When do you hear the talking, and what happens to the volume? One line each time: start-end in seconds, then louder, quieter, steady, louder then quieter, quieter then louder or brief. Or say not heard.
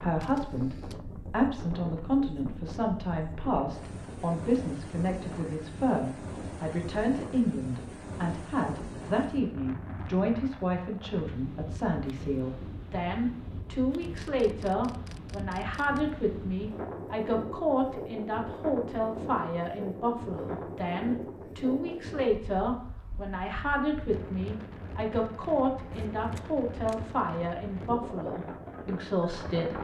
0.0-29.7 steady.